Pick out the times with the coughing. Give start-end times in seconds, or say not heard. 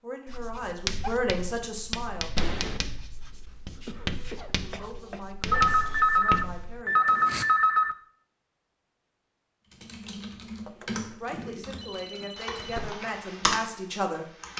3.9-5.2.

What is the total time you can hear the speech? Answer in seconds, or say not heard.
9 s.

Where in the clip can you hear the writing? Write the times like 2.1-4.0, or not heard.
0.2-7.5.